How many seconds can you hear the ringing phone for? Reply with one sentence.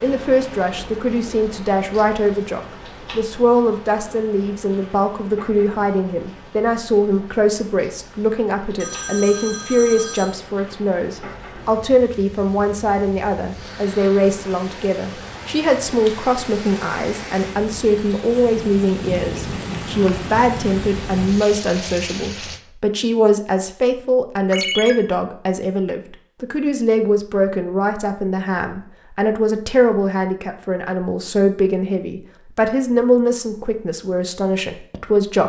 You can hear the ringing phone for 2 seconds altogether.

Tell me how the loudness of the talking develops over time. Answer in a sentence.
The loudness of the talking stays about the same.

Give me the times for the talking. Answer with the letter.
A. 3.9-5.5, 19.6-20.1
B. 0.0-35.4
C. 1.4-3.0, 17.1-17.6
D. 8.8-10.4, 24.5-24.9
B.